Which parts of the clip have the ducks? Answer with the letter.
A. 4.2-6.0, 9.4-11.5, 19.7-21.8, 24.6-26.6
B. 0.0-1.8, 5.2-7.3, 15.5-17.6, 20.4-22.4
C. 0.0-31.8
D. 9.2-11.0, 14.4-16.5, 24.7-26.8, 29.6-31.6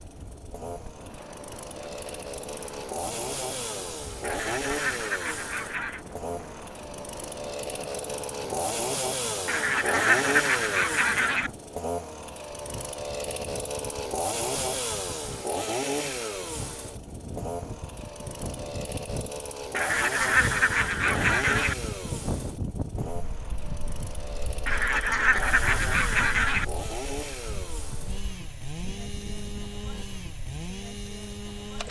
A.